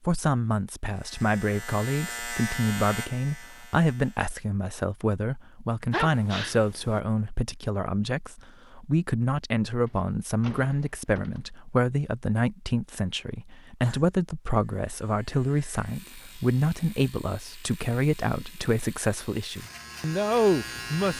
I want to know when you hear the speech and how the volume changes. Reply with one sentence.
You can hear the speech from 0.1 to 21.1 s, at a steady volume.